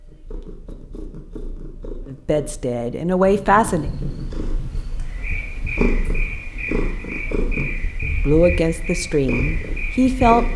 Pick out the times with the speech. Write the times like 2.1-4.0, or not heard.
2.0-3.9, 8.2-10.5.